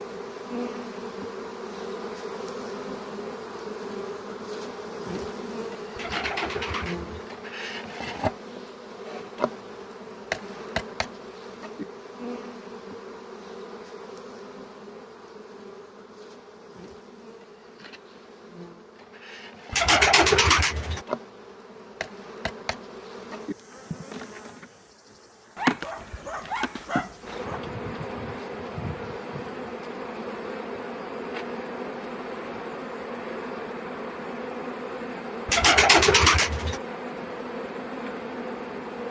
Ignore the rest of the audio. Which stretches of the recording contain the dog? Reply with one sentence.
You can hear the dog from 25.6 to 27.6 s.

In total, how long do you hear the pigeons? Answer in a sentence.
You can hear the pigeons for 4 seconds altogether.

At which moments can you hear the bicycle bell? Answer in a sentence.
You can't hear the bicycle bell here.